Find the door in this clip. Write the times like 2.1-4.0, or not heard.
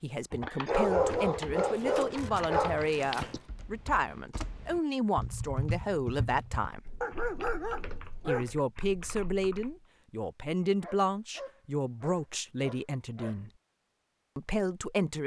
not heard.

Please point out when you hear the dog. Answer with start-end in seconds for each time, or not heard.
0.7-3.4, 7.0-8.6, 10.8-13.4.